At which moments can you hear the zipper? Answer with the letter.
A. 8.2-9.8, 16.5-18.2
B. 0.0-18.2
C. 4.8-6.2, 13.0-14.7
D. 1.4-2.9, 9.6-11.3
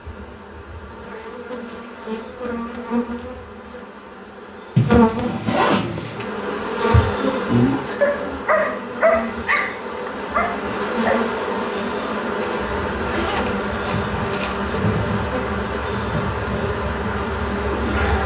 C.